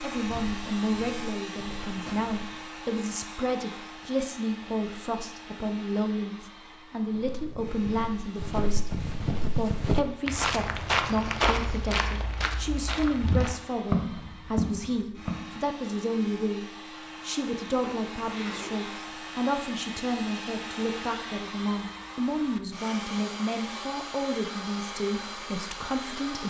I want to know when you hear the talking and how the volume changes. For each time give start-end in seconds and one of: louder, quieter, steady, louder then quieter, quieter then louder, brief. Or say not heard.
0.0-26.4 steady.